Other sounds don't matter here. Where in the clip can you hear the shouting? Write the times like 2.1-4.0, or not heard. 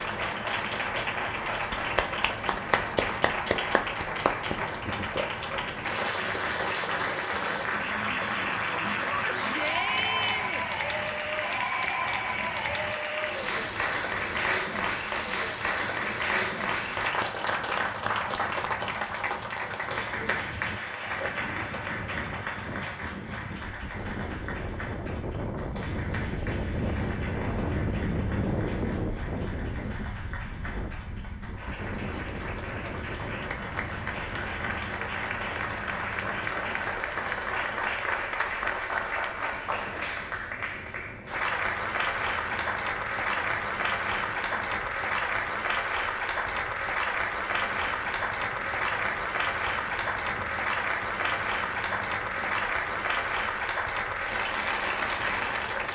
9.1-10.7.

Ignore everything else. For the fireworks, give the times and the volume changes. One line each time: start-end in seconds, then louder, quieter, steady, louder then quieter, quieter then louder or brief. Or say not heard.
not heard.